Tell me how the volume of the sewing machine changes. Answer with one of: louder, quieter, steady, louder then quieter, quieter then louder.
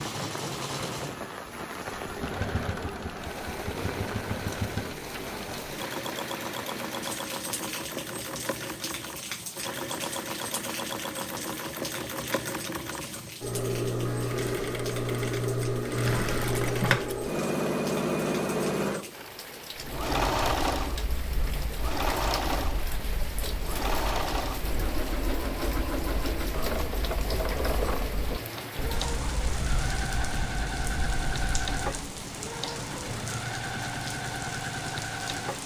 louder then quieter.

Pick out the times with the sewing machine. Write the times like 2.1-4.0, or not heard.
0.0-35.6.